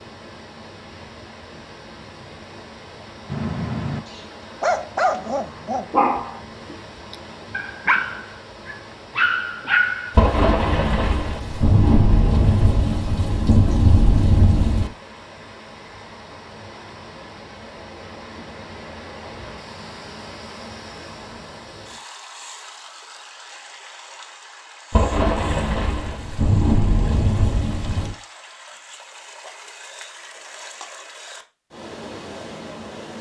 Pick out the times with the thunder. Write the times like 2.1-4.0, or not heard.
10.2-14.9, 24.9-28.1.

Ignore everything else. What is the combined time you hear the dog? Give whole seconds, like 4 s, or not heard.
7 s.